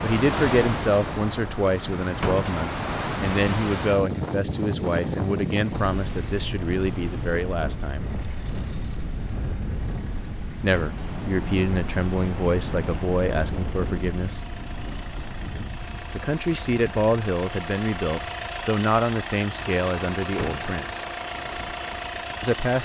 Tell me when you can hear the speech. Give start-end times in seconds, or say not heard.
0.0-8.1, 10.6-14.4, 16.1-21.1, 22.4-22.8.